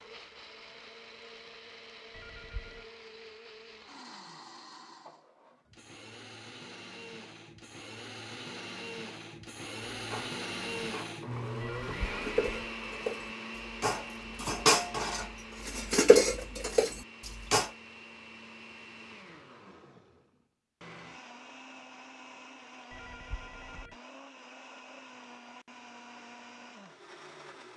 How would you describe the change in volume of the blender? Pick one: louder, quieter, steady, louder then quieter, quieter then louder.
louder then quieter.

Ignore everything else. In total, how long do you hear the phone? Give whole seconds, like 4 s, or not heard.
3 s.